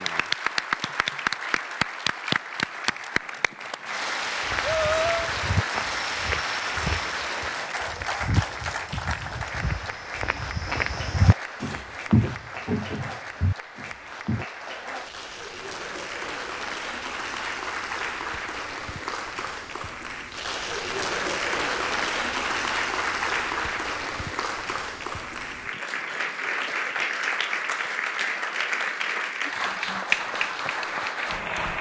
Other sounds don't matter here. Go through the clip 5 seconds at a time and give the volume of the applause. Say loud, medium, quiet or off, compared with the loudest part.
loud, loud, medium, medium, loud, loud, loud.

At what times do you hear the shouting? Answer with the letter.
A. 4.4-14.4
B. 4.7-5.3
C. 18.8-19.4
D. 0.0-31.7
B.